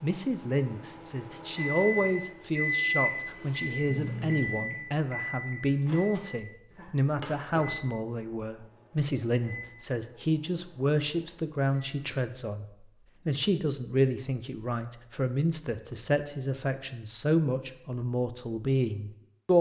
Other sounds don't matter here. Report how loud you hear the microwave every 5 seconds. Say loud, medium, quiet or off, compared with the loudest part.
loud, medium, quiet, off.